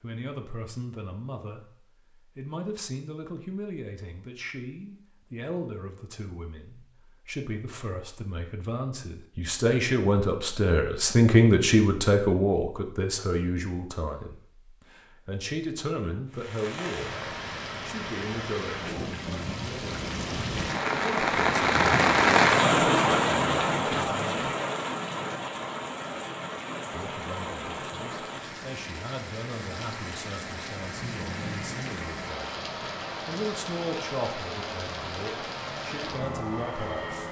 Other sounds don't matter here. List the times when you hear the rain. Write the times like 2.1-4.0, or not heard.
16.3-37.2.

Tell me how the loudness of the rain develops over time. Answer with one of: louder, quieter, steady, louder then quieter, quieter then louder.
louder then quieter.